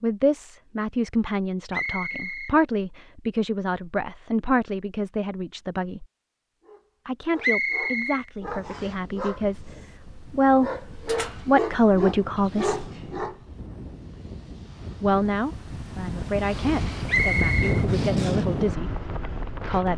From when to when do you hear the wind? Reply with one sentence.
The wind can be heard from 8.4 to 19.9 s.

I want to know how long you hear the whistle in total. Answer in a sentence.
You can hear the whistle for 3 seconds altogether.